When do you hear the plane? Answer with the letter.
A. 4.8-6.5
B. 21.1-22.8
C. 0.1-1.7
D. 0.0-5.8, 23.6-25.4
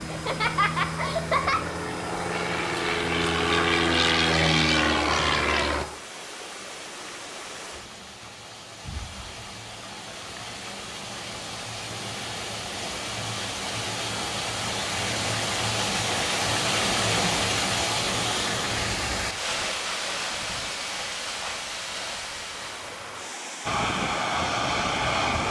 D.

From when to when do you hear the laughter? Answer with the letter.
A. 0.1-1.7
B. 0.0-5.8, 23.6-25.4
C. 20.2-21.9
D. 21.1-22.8
A.